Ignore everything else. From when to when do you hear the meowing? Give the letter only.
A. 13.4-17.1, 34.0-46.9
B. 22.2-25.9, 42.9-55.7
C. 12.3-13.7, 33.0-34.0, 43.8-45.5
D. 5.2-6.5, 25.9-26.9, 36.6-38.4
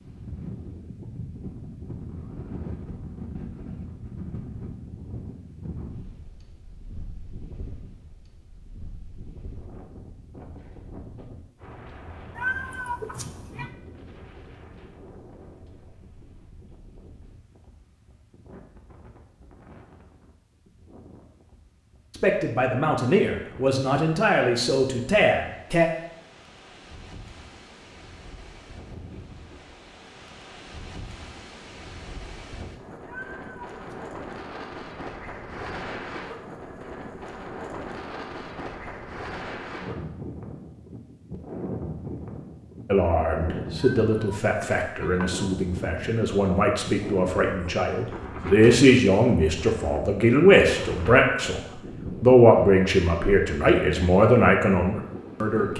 C.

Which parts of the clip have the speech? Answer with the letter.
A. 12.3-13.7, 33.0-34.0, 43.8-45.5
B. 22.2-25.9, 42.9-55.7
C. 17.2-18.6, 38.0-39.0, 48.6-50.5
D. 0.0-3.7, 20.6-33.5
B.